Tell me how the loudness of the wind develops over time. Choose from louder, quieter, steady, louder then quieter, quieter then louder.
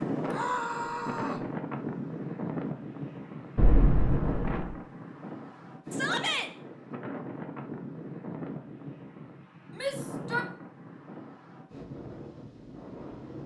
quieter.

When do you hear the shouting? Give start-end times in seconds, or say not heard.
0.2-1.4, 5.9-6.5, 9.8-10.4.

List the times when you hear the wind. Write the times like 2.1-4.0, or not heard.
0.0-13.4.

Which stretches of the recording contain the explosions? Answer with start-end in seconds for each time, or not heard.
3.5-4.8.